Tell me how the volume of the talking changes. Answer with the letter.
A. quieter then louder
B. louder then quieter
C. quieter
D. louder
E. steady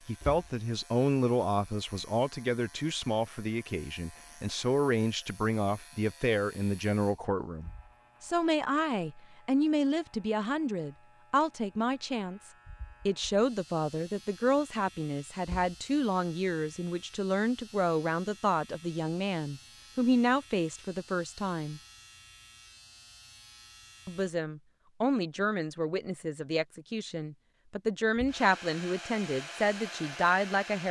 E.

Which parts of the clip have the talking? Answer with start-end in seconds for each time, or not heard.
0.1-21.8, 24.1-30.8.